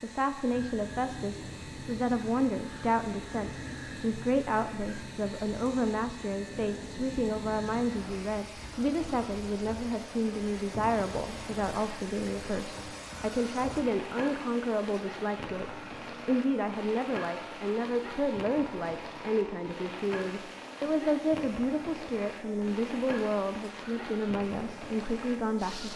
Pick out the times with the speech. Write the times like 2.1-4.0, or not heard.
0.0-25.9.